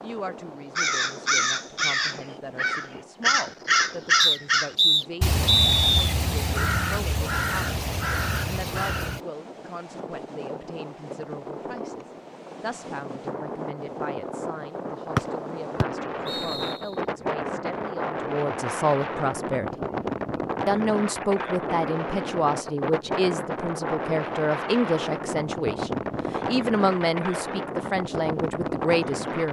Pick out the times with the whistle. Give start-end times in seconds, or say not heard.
4.2-6.0, 15.8-16.8.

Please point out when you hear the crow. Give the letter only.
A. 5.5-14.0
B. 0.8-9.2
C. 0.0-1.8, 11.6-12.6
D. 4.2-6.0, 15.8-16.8
B.